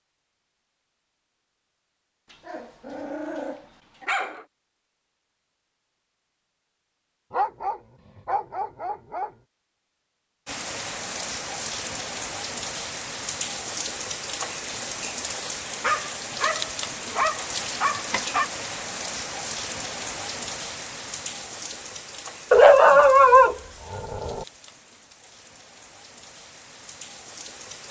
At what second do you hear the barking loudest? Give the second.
23 s.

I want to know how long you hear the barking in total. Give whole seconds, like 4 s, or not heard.
9 s.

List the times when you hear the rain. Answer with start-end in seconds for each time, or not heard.
10.4-27.8.